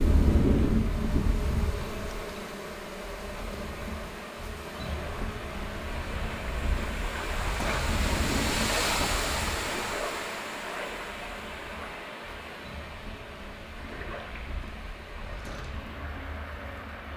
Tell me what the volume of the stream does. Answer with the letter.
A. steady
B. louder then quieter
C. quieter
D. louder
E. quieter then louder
B.